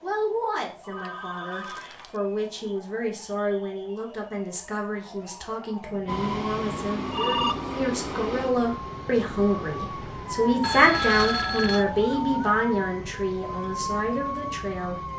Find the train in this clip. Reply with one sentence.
The train can be heard from 6.0 to 12.4 s.